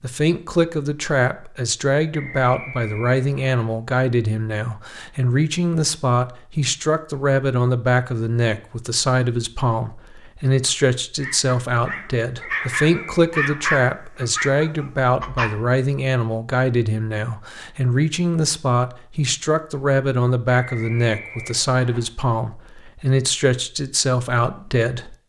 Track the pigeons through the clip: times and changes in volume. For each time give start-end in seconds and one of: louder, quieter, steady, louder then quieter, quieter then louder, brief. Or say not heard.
not heard.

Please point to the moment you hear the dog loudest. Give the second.
14 s.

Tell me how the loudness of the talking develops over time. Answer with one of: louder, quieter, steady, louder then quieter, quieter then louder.
steady.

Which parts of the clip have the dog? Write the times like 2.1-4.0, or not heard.
10.7-15.6.